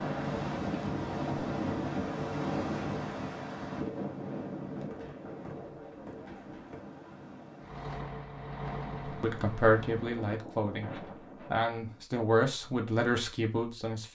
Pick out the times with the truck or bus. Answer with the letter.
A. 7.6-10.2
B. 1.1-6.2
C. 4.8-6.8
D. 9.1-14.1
A.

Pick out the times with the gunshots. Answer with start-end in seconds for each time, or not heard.
4.8-6.8.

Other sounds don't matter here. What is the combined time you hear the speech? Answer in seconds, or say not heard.
5 s.